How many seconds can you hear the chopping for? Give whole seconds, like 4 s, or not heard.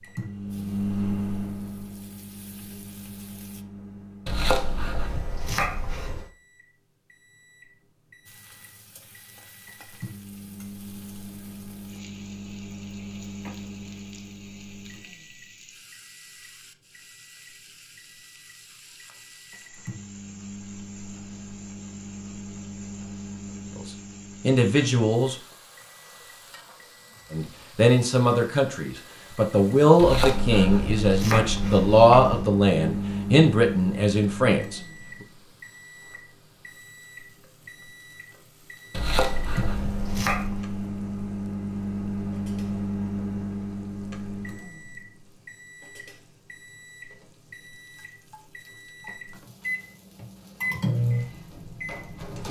6 s.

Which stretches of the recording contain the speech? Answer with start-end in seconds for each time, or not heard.
24.4-25.4, 27.3-34.8.